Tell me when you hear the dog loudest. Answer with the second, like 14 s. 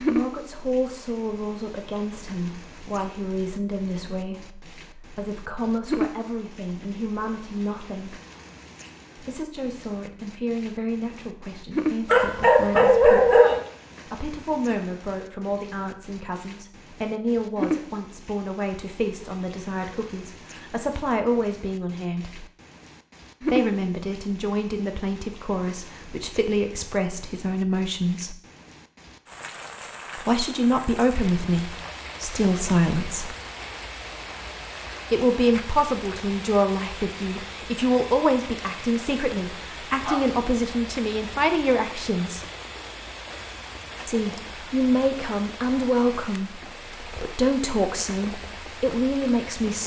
13 s.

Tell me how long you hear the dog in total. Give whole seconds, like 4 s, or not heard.
2 s.